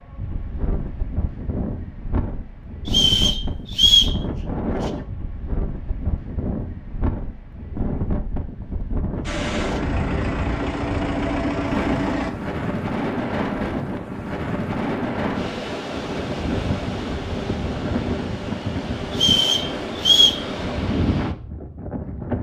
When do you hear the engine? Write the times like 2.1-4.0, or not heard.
9.2-12.3.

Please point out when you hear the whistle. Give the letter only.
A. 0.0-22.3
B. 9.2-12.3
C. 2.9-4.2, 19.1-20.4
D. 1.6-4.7
C.